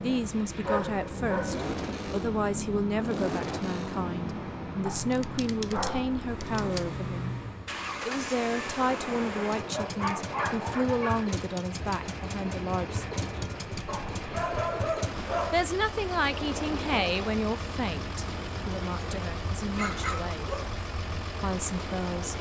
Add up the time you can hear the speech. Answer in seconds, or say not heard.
18 s.